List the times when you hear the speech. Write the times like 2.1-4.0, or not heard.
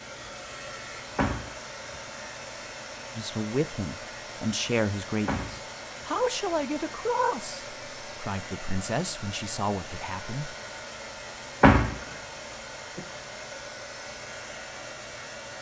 3.1-10.6.